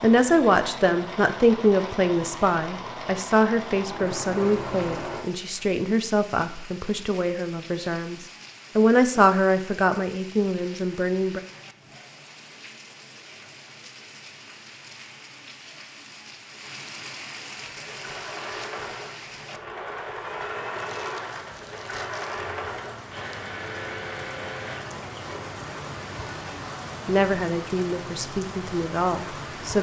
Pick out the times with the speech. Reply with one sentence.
You can hear the speech from 0.0 to 11.4 s and from 27.1 to 29.7 s.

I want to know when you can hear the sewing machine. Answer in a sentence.
You can hear the sewing machine from 0.0 to 5.2 s and from 17.6 to 26.6 s.